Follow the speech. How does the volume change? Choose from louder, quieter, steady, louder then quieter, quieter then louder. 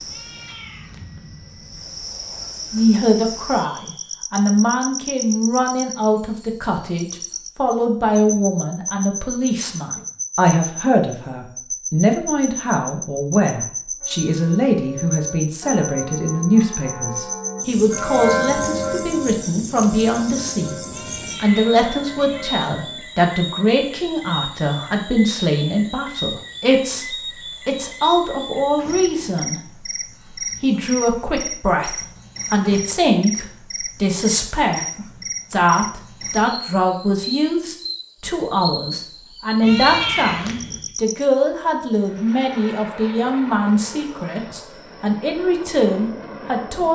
steady.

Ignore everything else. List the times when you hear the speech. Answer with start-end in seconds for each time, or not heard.
2.7-20.8, 21.4-46.9.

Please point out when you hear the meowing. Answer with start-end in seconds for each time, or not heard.
0.1-1.1, 20.9-22.4, 39.6-40.9.